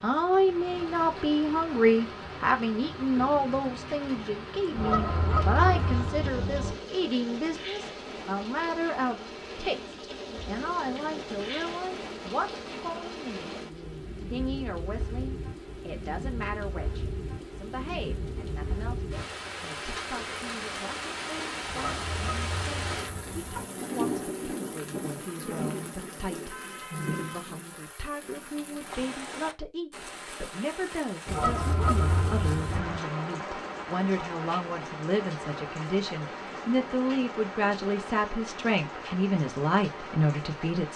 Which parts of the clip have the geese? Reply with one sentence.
You can hear the geese from 4.8 to 6.8 s, from 21.6 to 23.6 s and from 31.2 to 33.0 s.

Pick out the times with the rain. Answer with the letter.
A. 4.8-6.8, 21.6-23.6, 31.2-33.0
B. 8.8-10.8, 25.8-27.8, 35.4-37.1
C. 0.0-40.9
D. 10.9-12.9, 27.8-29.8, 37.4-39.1
C.